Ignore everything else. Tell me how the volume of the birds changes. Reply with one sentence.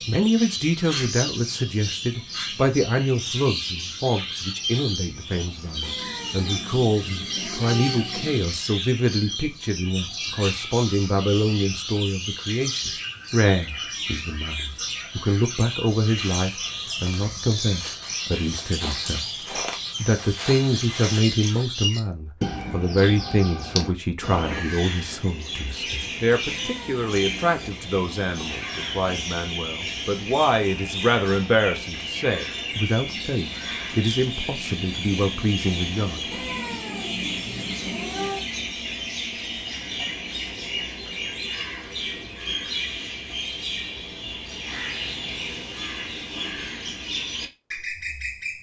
The loudness of the birds stays about the same.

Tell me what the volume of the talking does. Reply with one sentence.
The volume of the talking stays about the same.